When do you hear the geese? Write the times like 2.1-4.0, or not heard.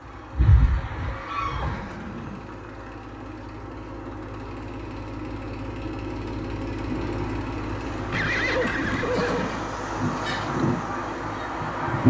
0.0-1.8, 6.8-12.0.